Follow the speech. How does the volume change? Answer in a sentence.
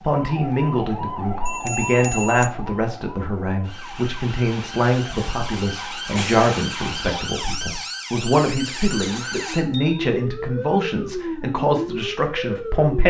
The volume of the speech stays about the same.